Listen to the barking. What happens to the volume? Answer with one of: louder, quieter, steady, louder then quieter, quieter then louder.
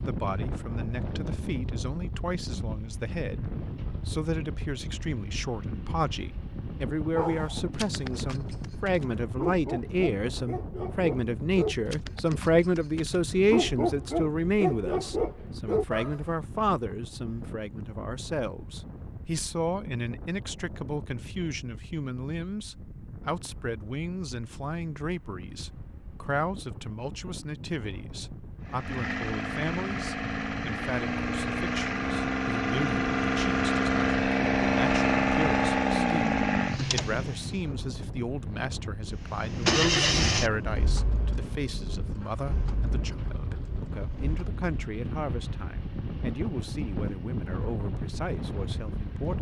louder.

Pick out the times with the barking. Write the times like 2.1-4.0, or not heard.
7.2-16.2.